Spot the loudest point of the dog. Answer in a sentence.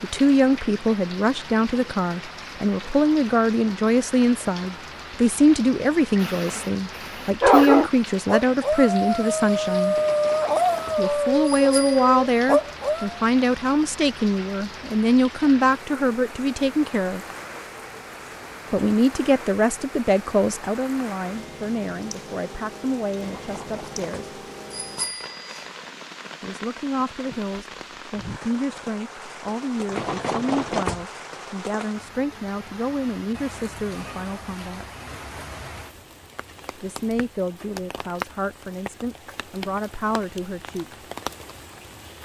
The volume of the dog peaks at 8 seconds.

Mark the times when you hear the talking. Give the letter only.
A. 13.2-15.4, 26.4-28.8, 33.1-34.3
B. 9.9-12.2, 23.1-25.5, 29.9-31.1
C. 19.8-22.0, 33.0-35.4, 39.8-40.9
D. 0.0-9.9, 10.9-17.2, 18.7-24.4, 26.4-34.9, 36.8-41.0
D.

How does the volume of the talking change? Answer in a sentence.
The loudness of the talking goes down.